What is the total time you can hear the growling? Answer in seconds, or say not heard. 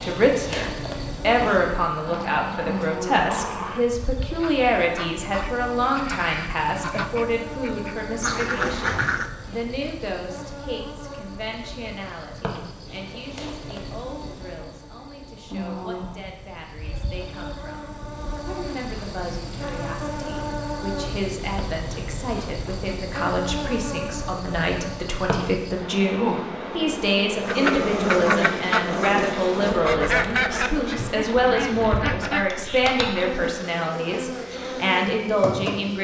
5 s.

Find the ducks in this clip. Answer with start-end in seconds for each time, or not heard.
4.2-9.3, 27.4-32.6.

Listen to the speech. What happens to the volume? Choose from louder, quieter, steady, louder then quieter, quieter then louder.
quieter then louder.